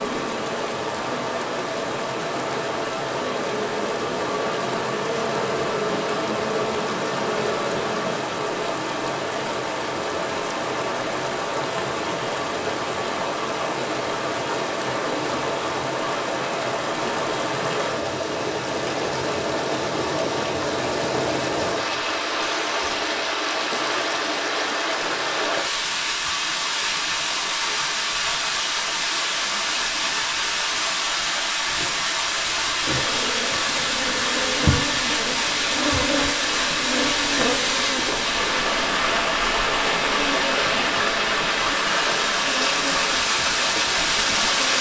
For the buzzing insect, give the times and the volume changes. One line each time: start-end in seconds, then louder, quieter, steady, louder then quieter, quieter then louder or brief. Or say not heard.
0.0-8.2 louder
32.8-44.7 quieter.